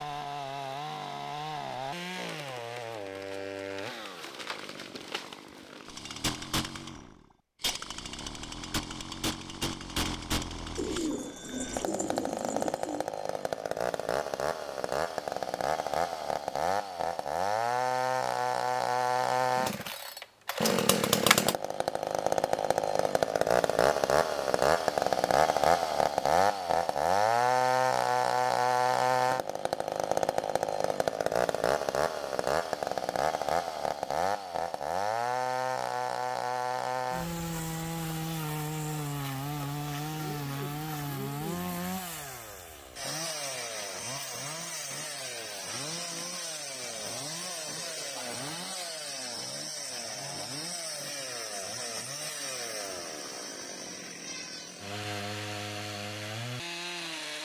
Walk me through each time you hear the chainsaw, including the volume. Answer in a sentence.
The chainsaw can be heard from 0.0 to 57.3 s, getting louder then quieter.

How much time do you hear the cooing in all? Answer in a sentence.
The cooing can be heard for 4 seconds in total.